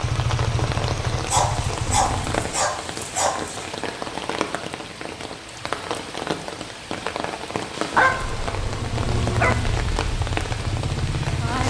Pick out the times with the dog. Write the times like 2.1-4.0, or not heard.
1.2-3.8, 7.9-9.6.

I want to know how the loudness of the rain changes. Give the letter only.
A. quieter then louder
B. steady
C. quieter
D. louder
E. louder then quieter
B.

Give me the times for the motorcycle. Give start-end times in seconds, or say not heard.
0.0-2.6, 8.7-11.6.